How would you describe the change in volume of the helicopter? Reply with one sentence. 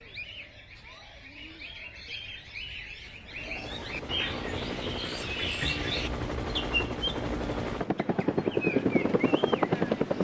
The volume of the helicopter goes up.